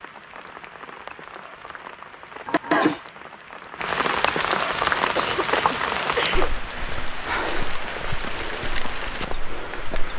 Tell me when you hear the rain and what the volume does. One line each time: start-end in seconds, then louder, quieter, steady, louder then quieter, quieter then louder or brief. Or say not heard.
0.0-10.1 louder then quieter.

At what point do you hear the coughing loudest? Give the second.
3 s.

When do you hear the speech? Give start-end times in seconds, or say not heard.
not heard.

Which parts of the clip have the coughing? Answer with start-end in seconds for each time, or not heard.
2.5-3.0, 5.2-6.5.